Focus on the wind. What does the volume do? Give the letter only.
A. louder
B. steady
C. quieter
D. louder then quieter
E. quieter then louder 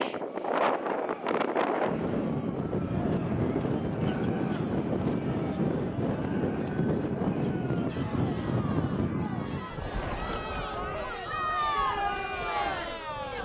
C.